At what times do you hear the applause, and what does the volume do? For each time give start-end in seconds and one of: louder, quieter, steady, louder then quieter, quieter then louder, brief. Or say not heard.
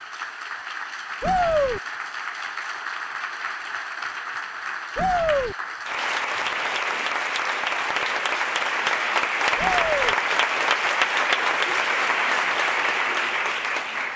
0.0-14.1 louder.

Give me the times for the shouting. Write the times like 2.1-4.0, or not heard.
1.2-1.8, 5.0-5.5, 9.6-10.2.